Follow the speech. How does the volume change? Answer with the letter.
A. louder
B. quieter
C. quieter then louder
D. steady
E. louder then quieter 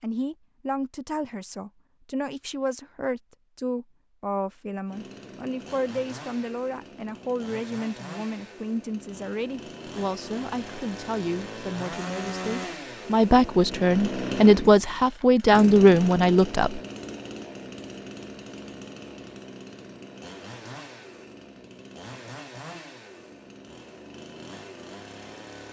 A.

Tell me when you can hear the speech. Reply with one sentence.
The speech can be heard from 0.0 to 16.8 s.